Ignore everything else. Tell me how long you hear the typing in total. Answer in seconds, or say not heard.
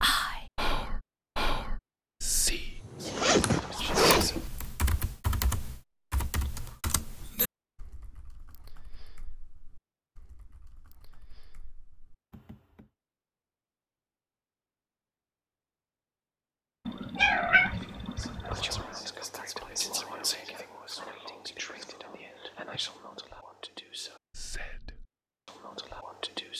10 s.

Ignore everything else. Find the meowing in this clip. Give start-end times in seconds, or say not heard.
16.9-18.9.